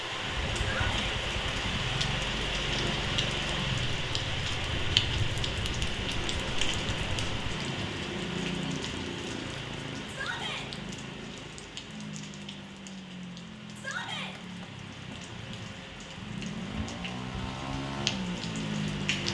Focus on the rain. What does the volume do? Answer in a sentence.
The loudness of the rain goes down, then up.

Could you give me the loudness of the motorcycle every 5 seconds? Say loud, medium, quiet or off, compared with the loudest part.
loud, loud, medium, loud.